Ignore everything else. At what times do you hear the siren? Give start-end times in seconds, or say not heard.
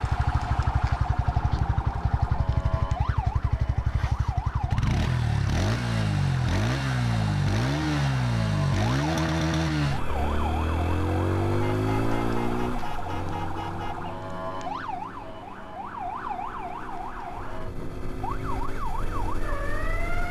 0.0-20.2.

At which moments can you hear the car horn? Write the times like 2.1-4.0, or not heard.
11.6-14.1.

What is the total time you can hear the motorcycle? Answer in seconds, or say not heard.
20 s.